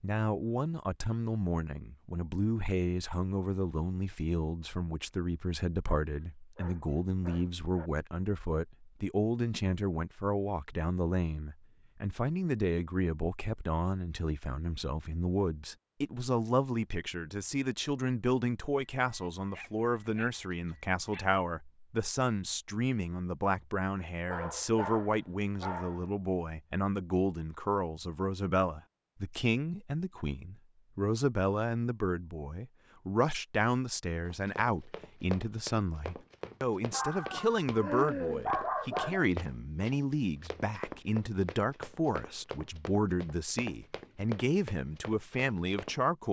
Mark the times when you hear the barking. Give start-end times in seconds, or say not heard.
5.8-7.9, 19.0-21.3, 24.2-26.1, 36.9-39.3.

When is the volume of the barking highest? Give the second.
39 s.